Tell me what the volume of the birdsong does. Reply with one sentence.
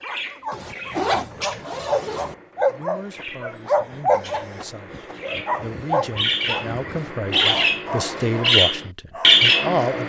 The volume of the birdsong goes down, then up.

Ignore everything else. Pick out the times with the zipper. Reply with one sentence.
The zipper can be heard from 0.5 to 2.4 s and from 6.8 to 8.4 s.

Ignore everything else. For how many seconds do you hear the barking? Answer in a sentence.
You can hear the barking for 10 seconds altogether.